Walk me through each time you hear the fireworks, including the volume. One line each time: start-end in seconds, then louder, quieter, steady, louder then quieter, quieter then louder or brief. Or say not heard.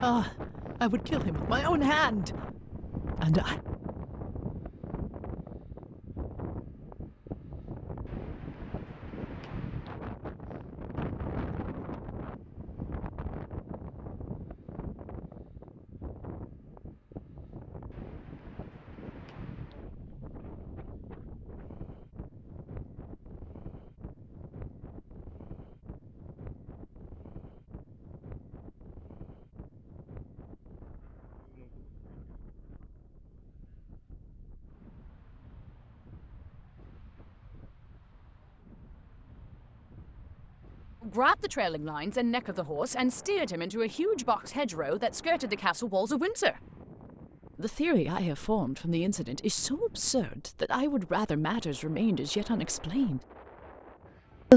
not heard.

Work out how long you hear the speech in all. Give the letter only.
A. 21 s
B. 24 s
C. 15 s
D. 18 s
C.